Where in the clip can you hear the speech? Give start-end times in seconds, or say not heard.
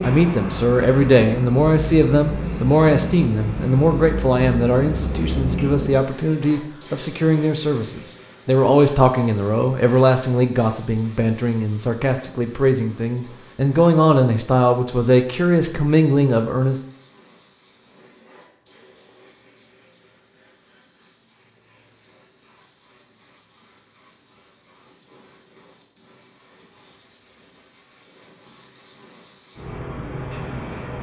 0.0-16.8.